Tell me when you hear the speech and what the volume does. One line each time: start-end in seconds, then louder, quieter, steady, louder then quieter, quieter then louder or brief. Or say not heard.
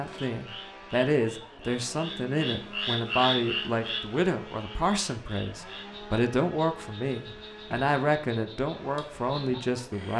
0.0-10.1 steady.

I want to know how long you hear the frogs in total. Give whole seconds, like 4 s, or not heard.
10 s.